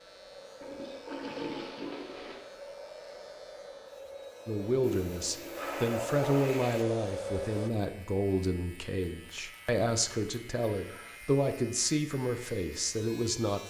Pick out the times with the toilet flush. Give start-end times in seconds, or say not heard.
0.6-2.4, 4.8-6.8, 10.6-11.2.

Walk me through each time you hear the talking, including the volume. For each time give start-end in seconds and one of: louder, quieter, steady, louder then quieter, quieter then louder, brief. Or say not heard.
4.5-13.6 steady.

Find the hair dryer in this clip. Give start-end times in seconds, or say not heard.
0.0-7.7.